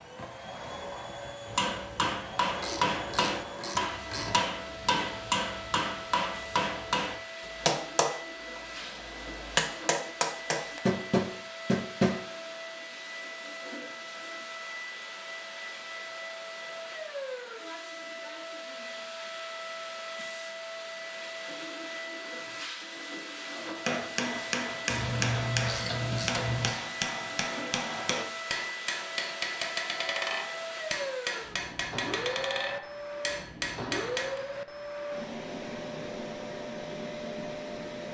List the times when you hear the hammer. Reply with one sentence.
You can hear the hammer from 1.4 to 12.2 s and from 23.9 to 34.4 s.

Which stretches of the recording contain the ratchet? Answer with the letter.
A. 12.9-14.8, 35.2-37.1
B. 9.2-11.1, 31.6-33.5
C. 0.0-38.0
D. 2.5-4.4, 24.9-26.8
D.